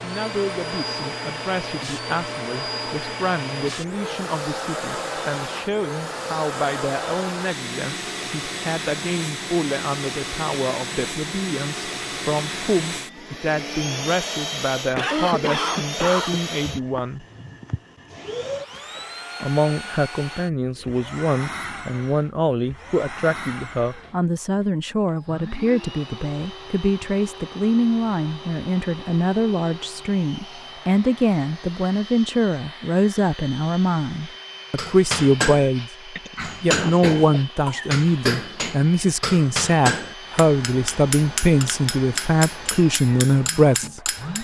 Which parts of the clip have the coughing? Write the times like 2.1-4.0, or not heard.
14.9-16.4, 37.5-38.0.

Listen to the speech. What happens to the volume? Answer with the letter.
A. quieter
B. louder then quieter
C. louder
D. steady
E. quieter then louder
C.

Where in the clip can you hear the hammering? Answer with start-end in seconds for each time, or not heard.
34.8-44.3.